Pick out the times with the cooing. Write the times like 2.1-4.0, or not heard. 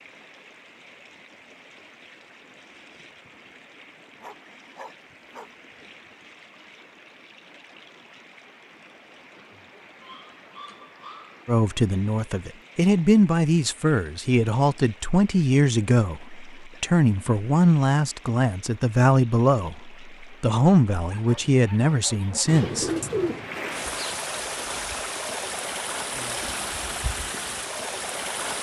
22.4-24.1.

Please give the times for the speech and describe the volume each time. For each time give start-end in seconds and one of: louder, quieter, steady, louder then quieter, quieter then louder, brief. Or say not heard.
11.4-23.1 steady.